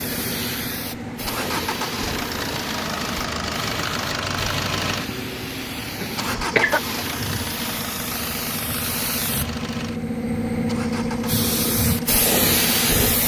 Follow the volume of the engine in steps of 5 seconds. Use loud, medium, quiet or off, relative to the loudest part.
loud, loud, medium.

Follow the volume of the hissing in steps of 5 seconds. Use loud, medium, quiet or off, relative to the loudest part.
medium, medium, loud.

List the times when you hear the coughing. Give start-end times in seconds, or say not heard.
6.0-6.8.